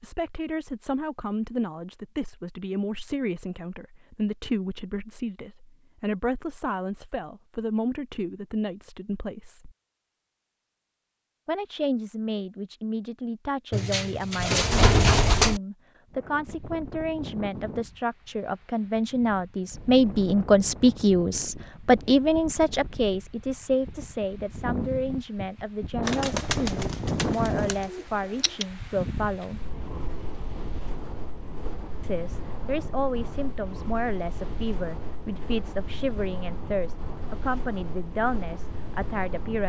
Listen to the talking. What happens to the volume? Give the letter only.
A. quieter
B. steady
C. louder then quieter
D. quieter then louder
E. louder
C.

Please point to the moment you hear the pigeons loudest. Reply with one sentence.
The loudest moment of the pigeons is at 15 seconds.